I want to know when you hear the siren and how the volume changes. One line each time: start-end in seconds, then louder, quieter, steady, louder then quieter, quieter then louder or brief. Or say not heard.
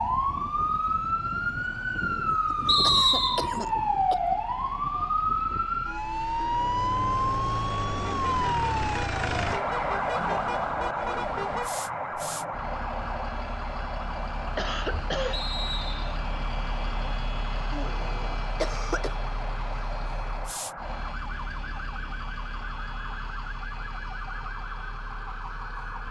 0.0-26.0 quieter.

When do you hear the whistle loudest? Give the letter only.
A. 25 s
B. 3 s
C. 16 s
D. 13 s
B.